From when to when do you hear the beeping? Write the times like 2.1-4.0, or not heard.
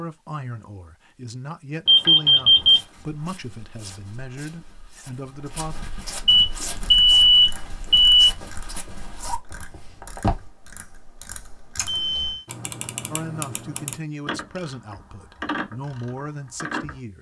1.9-2.8, 6.2-8.3, 11.8-12.4.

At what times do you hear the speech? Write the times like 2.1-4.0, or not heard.
0.0-5.8, 13.1-17.1.